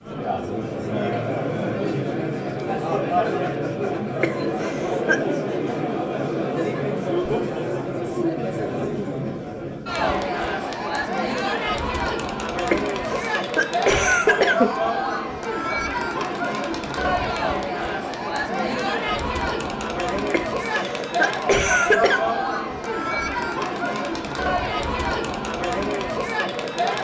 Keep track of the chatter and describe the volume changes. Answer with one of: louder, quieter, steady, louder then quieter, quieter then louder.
steady.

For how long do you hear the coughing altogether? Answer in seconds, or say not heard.
5 s.